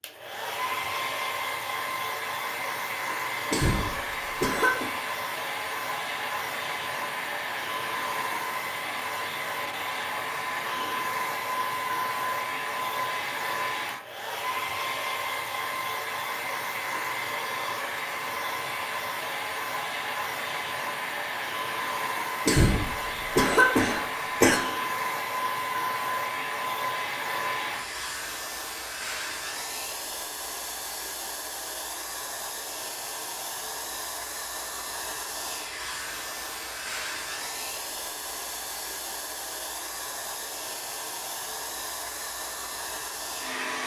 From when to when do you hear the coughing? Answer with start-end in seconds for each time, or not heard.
3.5-4.8, 22.4-24.6.